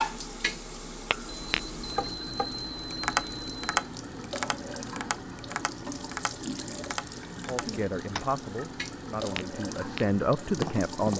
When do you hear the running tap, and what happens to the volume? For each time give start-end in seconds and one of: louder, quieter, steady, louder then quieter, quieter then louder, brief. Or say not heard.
0.0-11.1 steady.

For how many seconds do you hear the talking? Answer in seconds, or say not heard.
4 s.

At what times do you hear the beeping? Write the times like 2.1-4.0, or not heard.
1.2-3.9.